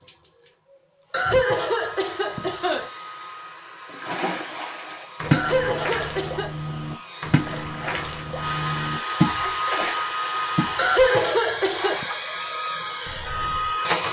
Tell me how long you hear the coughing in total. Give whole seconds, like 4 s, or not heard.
4 s.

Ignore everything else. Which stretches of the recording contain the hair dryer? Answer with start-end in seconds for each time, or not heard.
0.0-14.0.